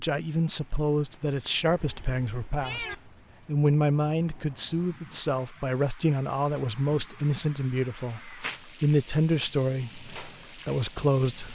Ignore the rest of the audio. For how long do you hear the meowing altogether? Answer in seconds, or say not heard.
2 s.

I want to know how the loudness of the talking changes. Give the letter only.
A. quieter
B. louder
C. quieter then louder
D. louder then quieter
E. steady
E.